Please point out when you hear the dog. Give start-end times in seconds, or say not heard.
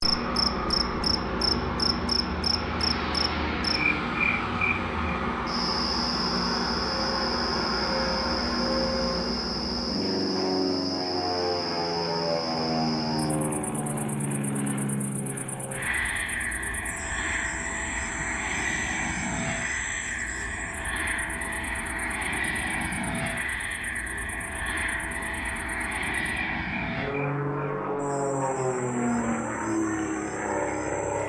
not heard.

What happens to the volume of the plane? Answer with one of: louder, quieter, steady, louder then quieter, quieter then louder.
steady.